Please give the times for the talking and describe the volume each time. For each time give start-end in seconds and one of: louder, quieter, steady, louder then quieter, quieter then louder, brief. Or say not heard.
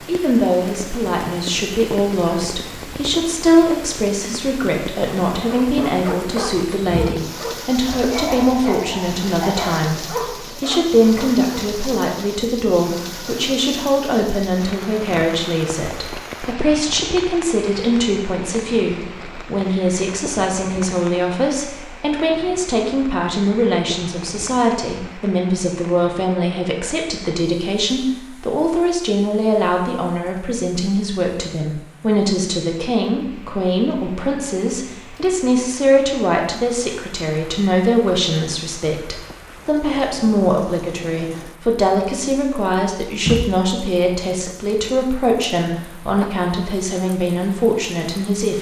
0.1-48.5 steady.